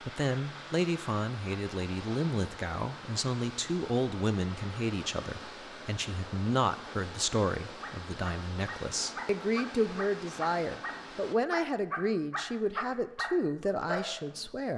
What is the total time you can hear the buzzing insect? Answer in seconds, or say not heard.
not heard.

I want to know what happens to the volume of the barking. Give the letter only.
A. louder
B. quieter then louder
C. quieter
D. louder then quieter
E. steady
A.